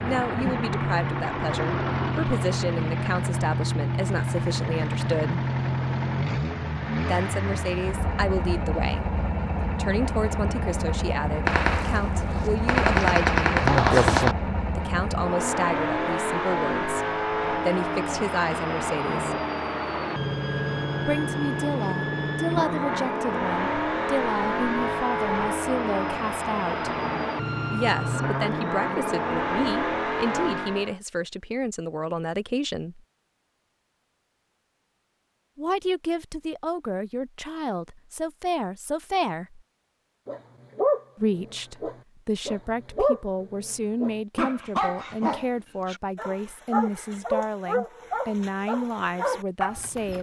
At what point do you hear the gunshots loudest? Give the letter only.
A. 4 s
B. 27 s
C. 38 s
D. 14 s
D.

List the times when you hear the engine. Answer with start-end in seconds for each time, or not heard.
0.0-31.0.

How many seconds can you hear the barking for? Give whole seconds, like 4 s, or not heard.
10 s.